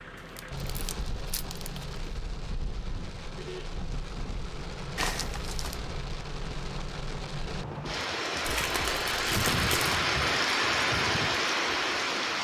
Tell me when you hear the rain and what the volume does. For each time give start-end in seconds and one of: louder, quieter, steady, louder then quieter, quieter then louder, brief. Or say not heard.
0.0-12.3 louder.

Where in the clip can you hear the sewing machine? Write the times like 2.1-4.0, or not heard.
not heard.